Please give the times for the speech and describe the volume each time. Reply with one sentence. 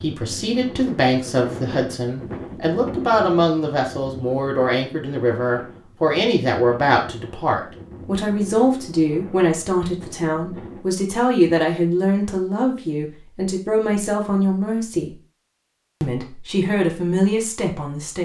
The speech can be heard from 0.0 to 15.2 s, at a steady volume; and briefly from 16.0 to 18.2 s.